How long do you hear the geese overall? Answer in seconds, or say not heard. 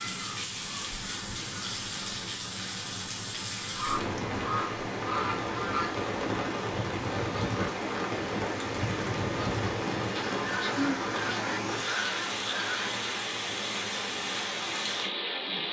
9 s.